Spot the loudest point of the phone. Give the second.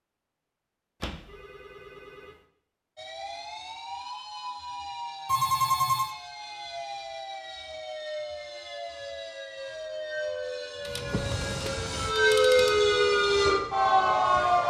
6 s.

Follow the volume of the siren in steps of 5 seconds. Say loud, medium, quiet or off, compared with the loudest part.
quiet, quiet, loud.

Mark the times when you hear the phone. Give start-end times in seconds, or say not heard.
1.0-2.4, 5.2-6.2, 10.8-12.8.